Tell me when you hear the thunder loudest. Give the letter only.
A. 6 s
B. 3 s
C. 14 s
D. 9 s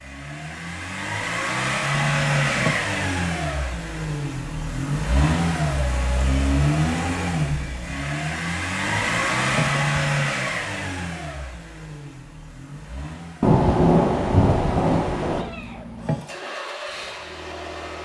C.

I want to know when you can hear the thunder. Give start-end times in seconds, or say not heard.
13.4-15.4.